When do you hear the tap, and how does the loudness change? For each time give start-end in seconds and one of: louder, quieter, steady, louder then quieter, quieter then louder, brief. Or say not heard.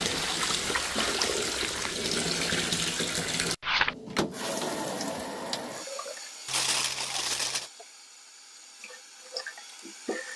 0.0-10.3 quieter.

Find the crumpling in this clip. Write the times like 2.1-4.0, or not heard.
0.9-1.9, 6.5-7.7.